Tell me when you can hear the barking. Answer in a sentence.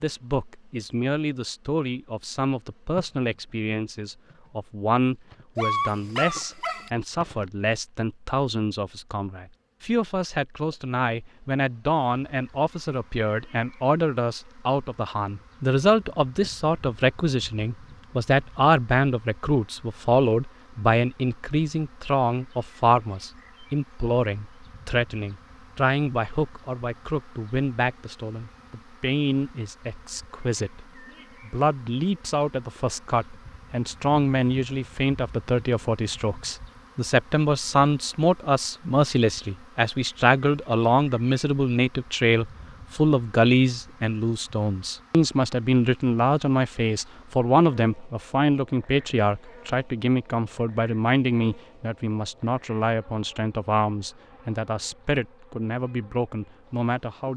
The barking can be heard from 5.5 to 6.9 s.